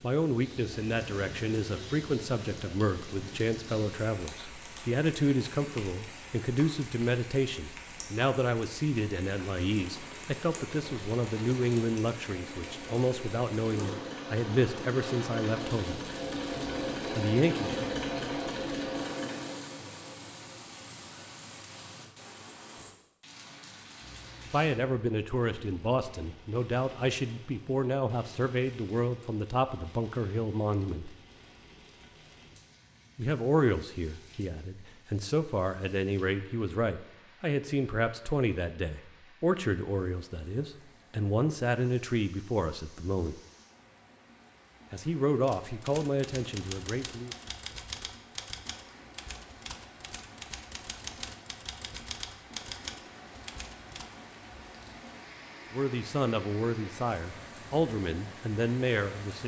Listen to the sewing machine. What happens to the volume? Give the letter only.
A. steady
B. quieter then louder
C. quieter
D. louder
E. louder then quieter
D.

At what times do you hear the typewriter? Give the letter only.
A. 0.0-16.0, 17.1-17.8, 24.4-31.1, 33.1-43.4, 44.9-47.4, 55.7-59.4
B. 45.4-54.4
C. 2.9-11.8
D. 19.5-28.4
B.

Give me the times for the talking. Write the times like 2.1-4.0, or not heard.
0.0-16.0, 17.1-17.8, 24.4-31.1, 33.1-43.4, 44.9-47.4, 55.7-59.4.